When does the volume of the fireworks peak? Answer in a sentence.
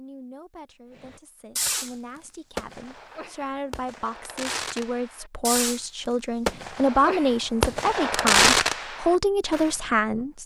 The loudest moment of the fireworks is at 8 seconds.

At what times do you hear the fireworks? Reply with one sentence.
The fireworks can be heard from 0.9 to 1.9 s, from 2.5 to 5.8 s and from 6.5 to 9.8 s.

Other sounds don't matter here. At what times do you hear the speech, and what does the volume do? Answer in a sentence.
You can hear the speech from 0.0 to 10.4 s, getting louder.